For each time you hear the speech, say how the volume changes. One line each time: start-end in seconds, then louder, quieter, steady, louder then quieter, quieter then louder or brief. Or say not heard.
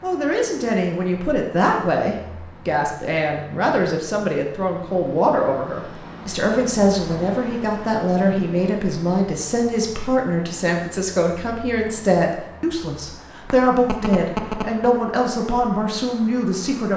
0.0-16.9 steady.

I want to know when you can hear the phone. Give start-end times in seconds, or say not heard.
13.5-14.9.